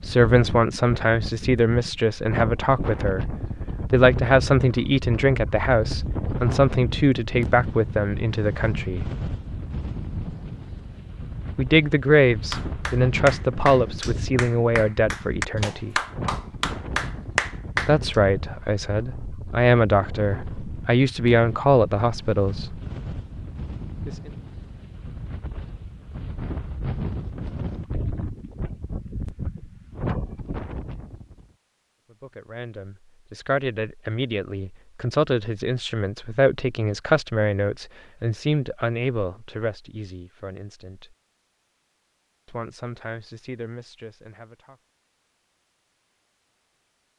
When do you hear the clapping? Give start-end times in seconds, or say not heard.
12.5-17.9.